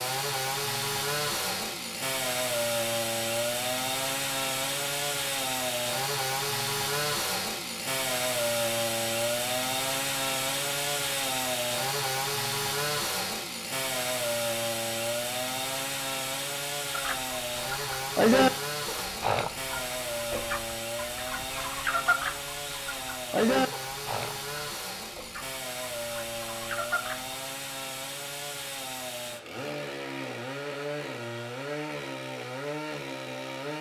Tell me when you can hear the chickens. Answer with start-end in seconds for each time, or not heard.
16.9-27.3.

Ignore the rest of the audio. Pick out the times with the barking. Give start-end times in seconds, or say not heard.
not heard.